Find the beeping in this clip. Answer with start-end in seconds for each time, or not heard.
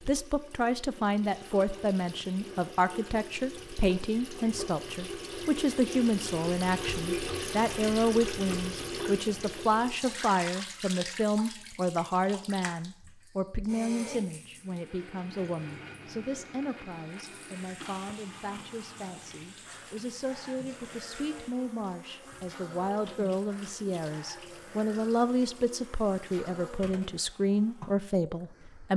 not heard.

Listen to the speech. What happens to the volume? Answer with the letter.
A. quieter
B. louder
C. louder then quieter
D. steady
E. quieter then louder
E.